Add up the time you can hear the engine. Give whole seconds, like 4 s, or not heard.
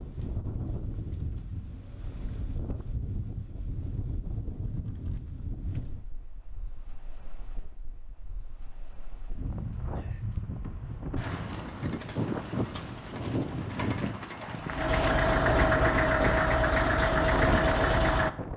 4 s.